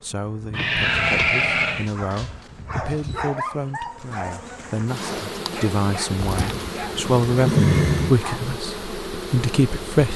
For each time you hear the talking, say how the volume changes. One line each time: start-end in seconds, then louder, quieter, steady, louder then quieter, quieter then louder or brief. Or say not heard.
0.0-10.1 louder.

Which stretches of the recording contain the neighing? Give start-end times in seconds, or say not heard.
0.5-1.9, 6.2-8.1.